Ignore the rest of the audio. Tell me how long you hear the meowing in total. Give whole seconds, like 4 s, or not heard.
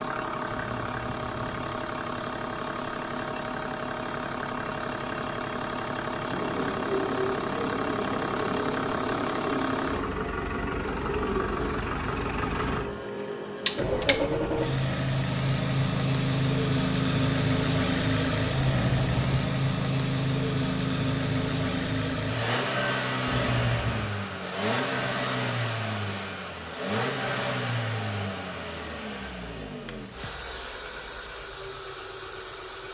3 s.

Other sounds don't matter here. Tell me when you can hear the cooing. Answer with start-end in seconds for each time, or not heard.
6.3-12.6.